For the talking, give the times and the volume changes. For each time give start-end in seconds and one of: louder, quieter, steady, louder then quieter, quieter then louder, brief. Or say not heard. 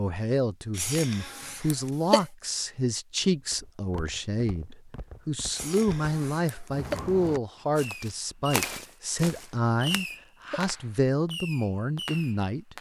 0.0-12.7 steady.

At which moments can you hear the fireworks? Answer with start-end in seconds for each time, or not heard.
7.8-12.7.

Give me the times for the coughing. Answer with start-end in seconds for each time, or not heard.
0.8-2.2, 5.5-7.0, 9.2-10.7.